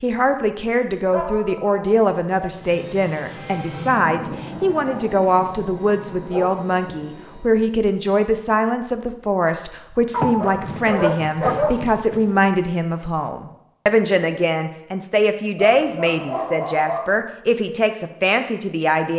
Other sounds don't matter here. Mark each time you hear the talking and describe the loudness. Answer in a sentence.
You can hear the talking from 0.0 to 19.1 s, at a steady volume.